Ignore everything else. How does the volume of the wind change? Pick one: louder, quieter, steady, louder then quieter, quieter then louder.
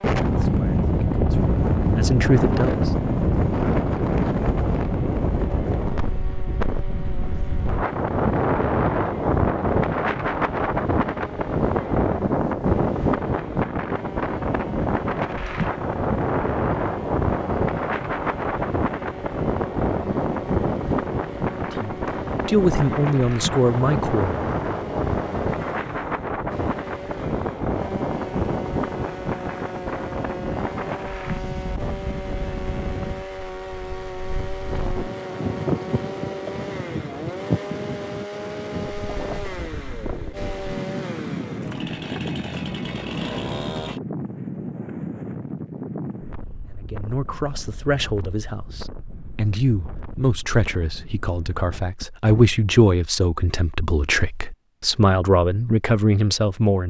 quieter.